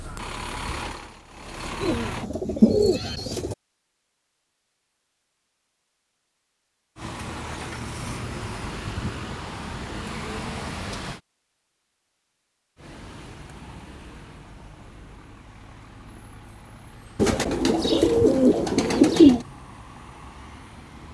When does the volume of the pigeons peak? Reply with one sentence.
The volume of the pigeons peaks at 19 seconds.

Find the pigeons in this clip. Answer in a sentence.
You can hear the pigeons from 1.8 to 3.5 s and from 17.1 to 19.4 s.